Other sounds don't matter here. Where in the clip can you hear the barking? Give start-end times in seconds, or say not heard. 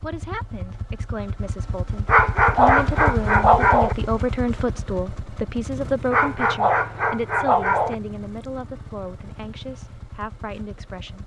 2.0-4.0, 6.1-8.0.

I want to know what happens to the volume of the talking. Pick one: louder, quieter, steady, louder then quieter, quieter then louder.
louder then quieter.